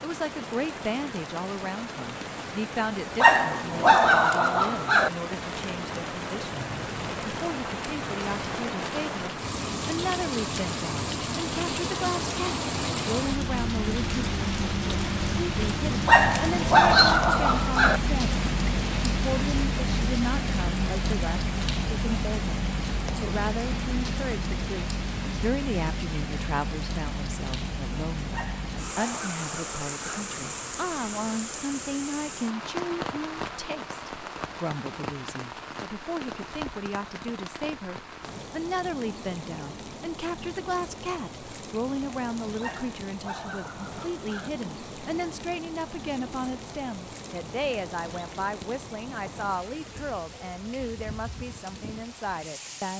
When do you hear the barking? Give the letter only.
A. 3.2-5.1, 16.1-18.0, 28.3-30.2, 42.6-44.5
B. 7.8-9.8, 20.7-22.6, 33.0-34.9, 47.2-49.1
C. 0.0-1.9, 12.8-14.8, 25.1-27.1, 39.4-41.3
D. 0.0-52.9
A.